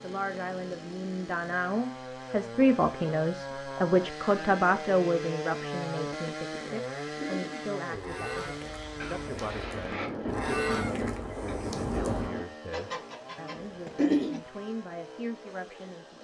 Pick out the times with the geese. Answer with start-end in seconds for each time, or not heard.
7.0-14.4.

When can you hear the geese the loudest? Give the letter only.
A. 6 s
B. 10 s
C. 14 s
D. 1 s
C.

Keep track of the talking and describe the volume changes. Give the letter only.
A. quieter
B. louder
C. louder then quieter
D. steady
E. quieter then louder
A.